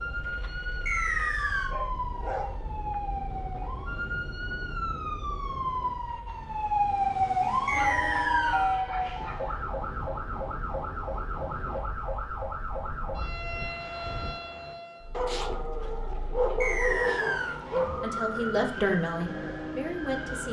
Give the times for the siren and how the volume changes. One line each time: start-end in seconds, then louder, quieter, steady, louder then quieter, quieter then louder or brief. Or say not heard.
0.0-20.4 louder then quieter.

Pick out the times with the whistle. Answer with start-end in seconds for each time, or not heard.
0.8-1.8, 7.7-8.8, 16.6-17.6.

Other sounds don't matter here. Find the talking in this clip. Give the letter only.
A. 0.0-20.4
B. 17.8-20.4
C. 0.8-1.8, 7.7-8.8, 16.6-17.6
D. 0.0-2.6
B.